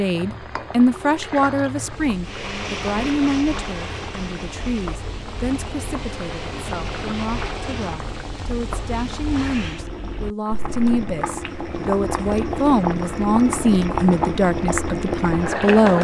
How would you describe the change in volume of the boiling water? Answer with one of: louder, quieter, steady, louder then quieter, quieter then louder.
louder.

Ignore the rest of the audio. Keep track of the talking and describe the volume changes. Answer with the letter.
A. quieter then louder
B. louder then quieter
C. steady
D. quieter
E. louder
A.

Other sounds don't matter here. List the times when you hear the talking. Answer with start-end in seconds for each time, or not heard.
0.0-16.0.